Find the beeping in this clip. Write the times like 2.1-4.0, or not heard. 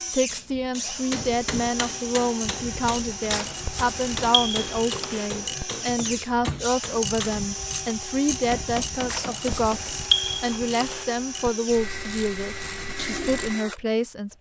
3.3-5.3, 9.1-11.1.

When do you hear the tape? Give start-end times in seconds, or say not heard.
not heard.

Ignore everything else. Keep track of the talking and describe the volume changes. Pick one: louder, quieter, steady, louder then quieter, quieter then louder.
steady.